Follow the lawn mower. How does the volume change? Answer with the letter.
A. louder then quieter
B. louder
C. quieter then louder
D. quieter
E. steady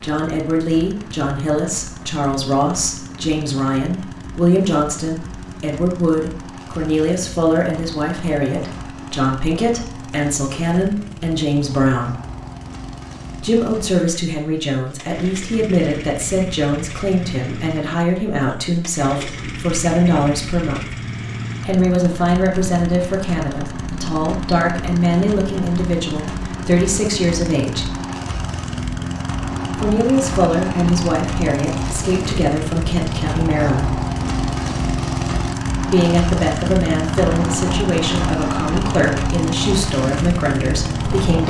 B.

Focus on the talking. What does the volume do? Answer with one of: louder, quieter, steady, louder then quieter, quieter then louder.
steady.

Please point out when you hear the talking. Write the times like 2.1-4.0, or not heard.
0.0-12.2, 13.4-20.8, 21.6-27.9, 29.8-34.0, 35.9-41.4.